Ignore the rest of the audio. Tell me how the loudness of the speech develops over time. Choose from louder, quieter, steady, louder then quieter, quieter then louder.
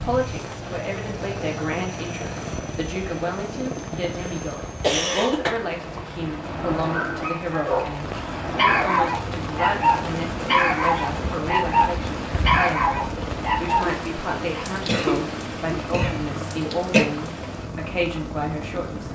steady.